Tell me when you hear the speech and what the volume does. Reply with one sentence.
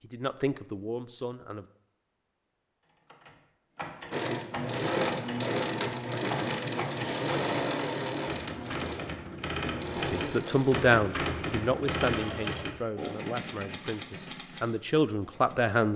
You can hear the speech briefly from 0.0 to 1.7 s; and from 9.9 to 15.9 s, getting quieter then louder.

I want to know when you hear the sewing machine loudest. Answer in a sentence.
The loudest moment of the sewing machine is at 5 seconds.